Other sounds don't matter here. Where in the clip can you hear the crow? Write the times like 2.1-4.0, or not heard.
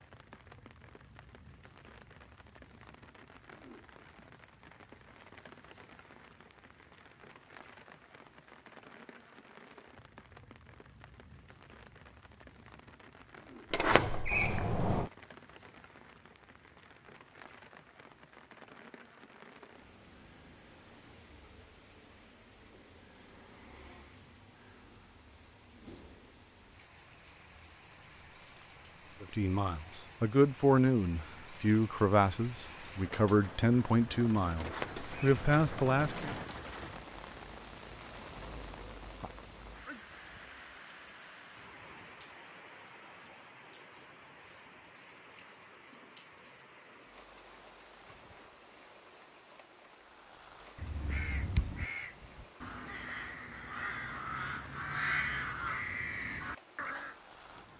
50.8-57.1.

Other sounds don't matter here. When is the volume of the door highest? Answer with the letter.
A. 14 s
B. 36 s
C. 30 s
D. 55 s
A.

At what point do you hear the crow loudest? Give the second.
55 s.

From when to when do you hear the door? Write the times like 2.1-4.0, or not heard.
13.7-15.1, 34.5-36.5.